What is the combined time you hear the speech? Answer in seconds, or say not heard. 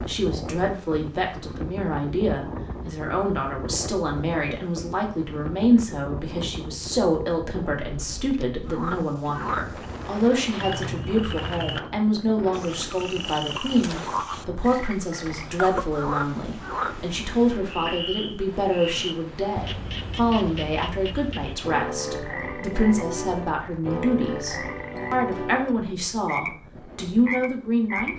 28 s.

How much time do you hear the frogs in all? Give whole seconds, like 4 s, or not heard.
19 s.